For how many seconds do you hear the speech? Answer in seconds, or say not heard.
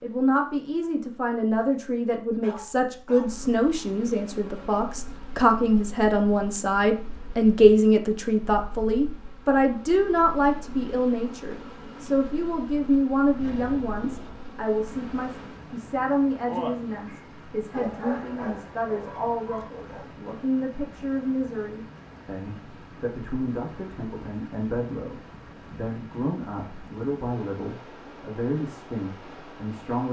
30 s.